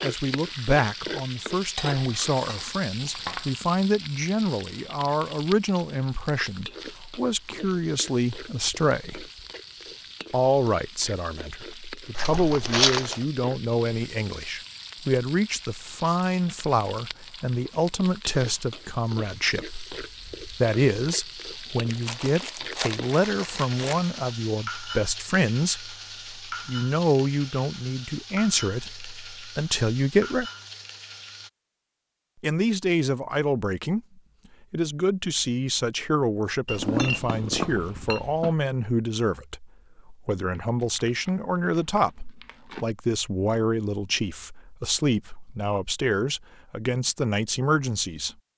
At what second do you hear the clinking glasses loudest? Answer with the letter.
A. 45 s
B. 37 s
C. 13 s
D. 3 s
B.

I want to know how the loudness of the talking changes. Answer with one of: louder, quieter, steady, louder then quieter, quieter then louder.
steady.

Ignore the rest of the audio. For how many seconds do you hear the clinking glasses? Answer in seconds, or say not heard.
4 s.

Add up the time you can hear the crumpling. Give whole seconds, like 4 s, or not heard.
6 s.